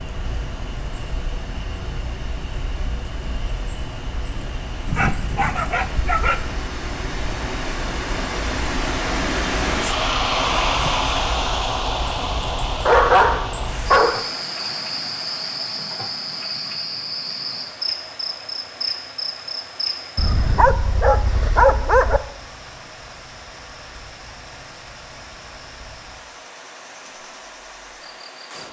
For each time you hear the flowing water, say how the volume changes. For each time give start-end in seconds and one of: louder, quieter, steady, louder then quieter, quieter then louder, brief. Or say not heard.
0.0-28.6 louder then quieter.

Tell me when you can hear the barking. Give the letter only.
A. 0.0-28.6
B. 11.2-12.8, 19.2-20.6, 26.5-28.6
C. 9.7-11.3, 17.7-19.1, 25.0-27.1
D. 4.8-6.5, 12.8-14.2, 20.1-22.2
D.